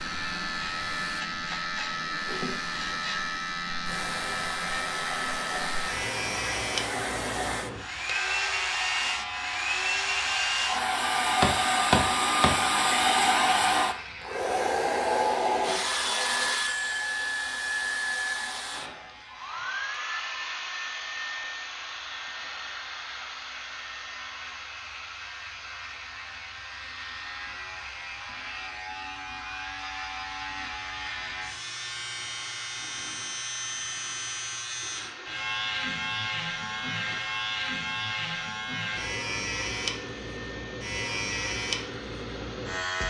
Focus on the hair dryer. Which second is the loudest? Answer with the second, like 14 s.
13 s.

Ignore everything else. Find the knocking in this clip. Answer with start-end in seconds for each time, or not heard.
11.4-12.6.